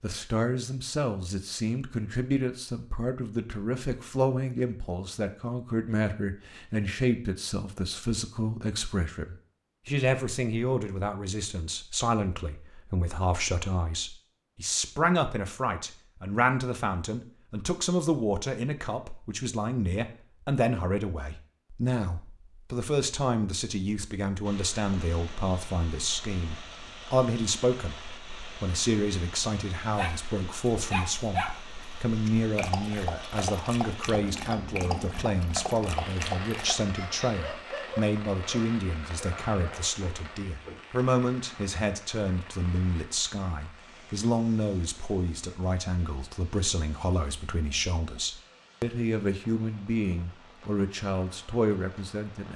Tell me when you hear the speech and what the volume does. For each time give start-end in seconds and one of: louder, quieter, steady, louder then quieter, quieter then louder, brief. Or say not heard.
0.0-27.9 steady
28.6-52.5 steady.